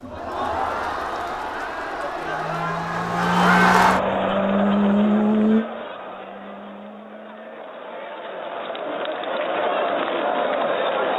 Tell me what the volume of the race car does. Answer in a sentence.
The loudness of the race car goes up, then down.